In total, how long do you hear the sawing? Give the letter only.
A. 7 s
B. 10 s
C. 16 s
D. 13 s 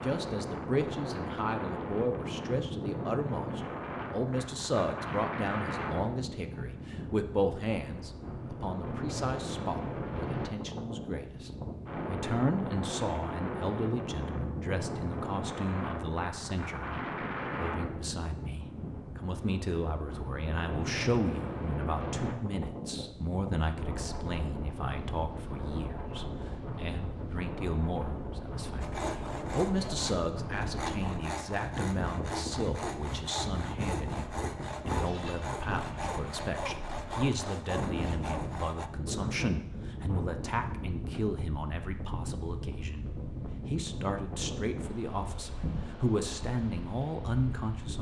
B.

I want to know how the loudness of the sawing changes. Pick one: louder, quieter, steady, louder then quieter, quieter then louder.
steady.